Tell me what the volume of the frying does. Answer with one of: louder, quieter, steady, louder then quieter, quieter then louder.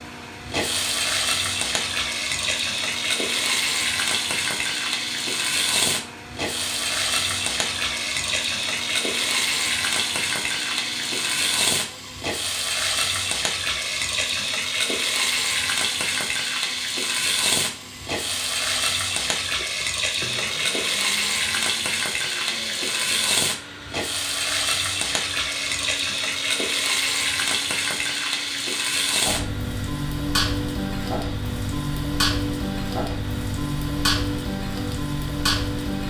steady.